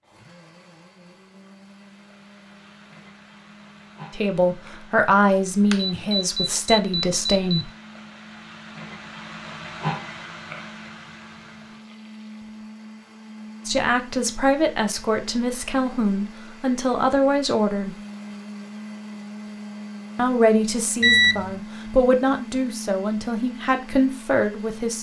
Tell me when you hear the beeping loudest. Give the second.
21 s.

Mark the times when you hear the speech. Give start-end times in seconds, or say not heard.
4.2-7.7, 13.7-17.9, 20.1-24.9.